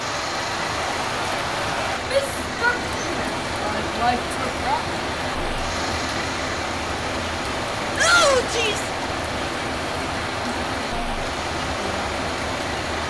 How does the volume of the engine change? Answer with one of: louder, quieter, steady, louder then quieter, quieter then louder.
steady.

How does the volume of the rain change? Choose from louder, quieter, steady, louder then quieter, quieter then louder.
steady.